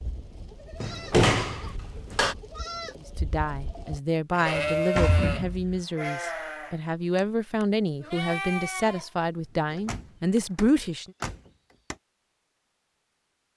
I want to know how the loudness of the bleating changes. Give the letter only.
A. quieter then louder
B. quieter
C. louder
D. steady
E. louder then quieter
E.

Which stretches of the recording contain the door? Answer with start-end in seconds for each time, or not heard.
0.8-2.4, 4.5-5.8, 9.7-11.9.